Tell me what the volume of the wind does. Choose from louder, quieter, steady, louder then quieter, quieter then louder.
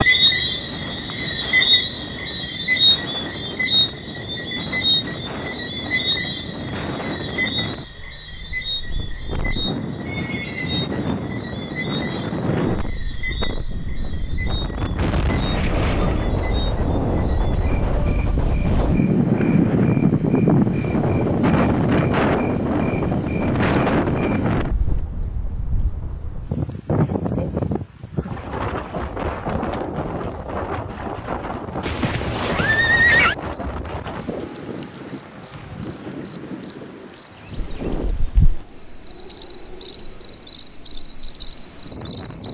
louder then quieter.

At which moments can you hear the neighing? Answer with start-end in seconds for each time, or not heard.
10.1-10.9, 15.4-16.3, 31.8-33.4.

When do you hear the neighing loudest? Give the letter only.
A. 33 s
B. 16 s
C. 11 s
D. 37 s
A.